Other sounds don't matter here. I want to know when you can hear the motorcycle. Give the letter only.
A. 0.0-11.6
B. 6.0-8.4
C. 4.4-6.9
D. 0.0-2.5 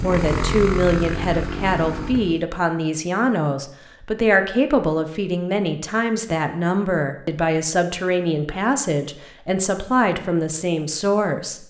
D.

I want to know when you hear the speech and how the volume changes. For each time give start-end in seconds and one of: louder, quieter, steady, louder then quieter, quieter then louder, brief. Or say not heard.
0.0-11.6 steady.